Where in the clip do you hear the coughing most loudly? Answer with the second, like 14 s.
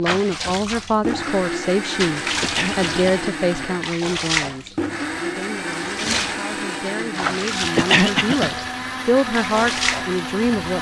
8 s.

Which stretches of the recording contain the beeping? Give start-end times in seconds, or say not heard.
not heard.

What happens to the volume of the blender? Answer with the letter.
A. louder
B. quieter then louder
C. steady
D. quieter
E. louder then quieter
C.